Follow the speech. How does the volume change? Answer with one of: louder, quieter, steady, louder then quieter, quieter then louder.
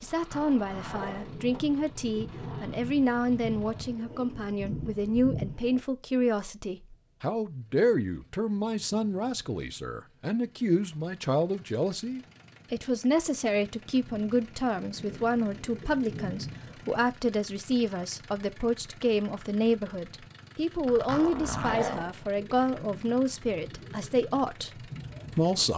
steady.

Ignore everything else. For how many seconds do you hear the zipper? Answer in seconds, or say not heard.
4 s.